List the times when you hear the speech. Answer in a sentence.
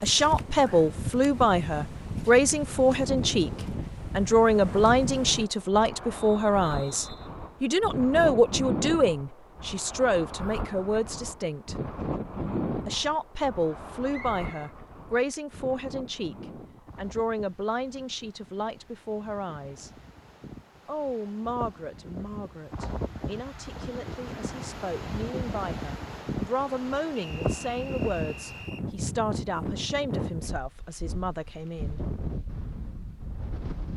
The speech can be heard from 0.0 to 3.5 s, from 4.1 to 11.8 s, from 12.8 to 19.9 s and from 20.9 to 32.0 s.